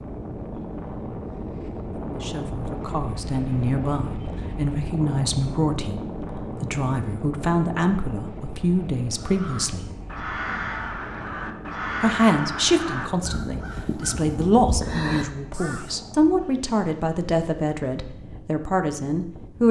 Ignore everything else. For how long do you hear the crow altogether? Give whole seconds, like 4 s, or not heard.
7 s.